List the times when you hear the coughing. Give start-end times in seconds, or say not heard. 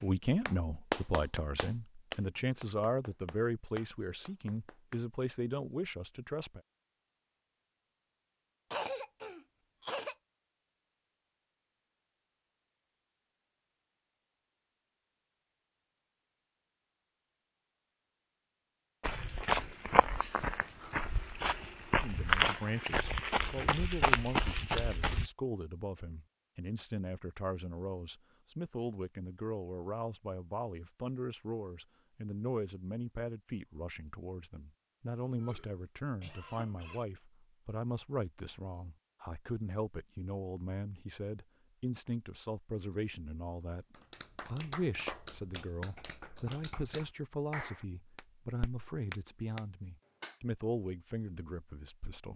8.7-10.2, 35.4-37.0.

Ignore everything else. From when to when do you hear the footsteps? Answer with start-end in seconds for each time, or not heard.
19.0-25.3.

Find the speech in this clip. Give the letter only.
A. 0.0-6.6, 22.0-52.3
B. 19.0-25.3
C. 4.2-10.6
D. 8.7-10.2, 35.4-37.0
A.